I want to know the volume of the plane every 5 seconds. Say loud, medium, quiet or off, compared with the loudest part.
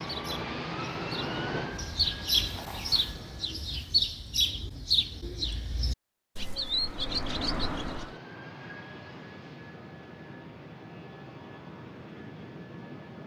loud, medium, medium.